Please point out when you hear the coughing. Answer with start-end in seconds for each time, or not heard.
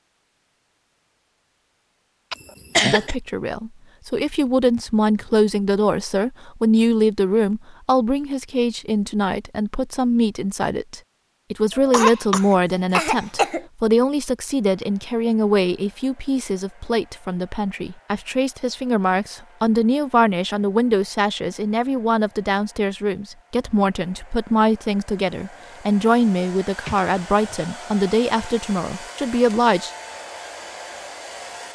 2.3-3.1, 11.8-13.7, 26.9-27.4.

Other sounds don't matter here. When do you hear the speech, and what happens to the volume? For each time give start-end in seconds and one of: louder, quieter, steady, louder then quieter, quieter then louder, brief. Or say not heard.
2.8-29.9 steady.